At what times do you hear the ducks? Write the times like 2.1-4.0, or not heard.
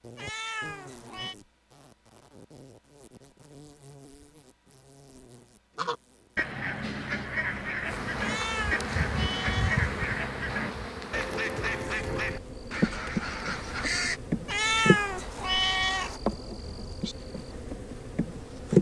5.8-14.2.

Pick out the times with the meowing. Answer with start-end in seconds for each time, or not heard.
0.1-1.4, 8.2-9.9, 14.4-16.2.